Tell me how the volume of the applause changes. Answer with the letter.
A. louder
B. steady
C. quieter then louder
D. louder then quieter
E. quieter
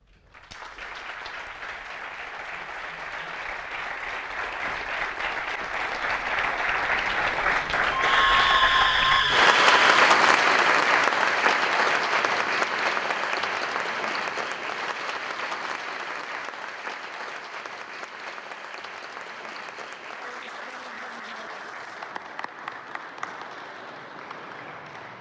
D.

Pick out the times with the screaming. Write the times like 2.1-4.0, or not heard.
7.9-10.0.